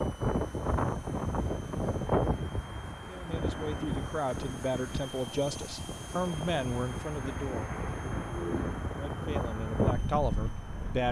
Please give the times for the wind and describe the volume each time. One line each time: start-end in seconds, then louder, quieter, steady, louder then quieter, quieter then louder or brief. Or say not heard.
0.0-11.0 quieter then louder.